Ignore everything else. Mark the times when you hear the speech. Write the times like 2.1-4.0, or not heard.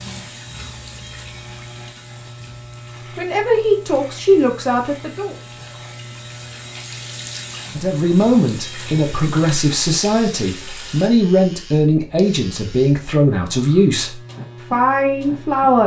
3.1-5.3, 7.7-15.8.